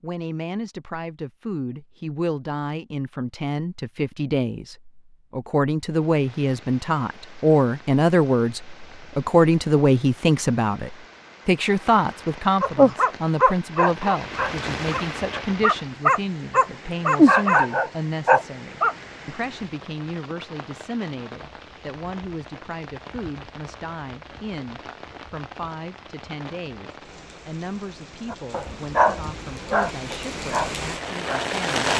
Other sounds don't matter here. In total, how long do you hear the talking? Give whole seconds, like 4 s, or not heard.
32 s.